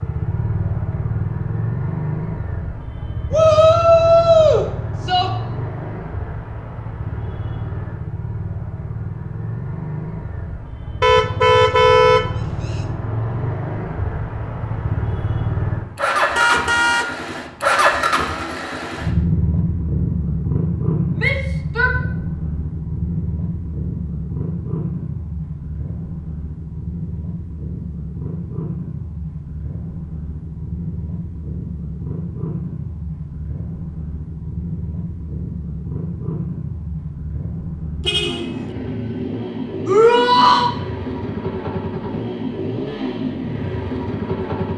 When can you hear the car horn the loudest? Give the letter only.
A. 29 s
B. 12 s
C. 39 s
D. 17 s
B.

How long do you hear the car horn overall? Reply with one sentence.
You can hear the car horn for 3 seconds altogether.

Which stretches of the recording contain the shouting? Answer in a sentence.
The shouting can be heard from 3.3 to 5.3 s, from 21.1 to 21.9 s and from 39.9 to 40.7 s.